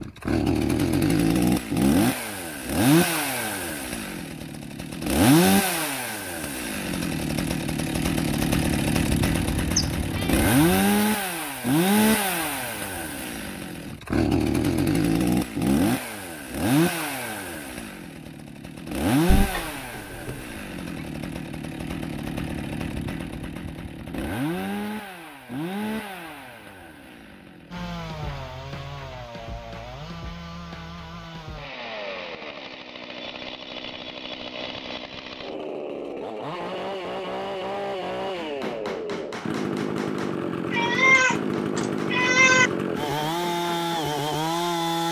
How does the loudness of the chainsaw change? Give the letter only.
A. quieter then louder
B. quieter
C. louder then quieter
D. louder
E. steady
A.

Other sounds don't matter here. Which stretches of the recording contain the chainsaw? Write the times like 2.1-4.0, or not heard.
0.0-45.0.